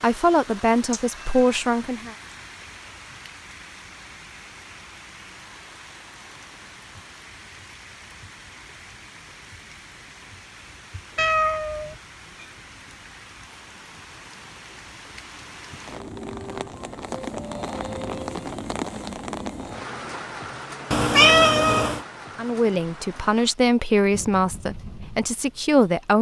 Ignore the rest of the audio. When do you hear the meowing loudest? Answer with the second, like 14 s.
21 s.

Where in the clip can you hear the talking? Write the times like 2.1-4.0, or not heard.
0.0-2.1, 22.4-26.1.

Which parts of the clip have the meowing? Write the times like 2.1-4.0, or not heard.
0.9-1.6, 11.2-12.0, 20.9-22.0.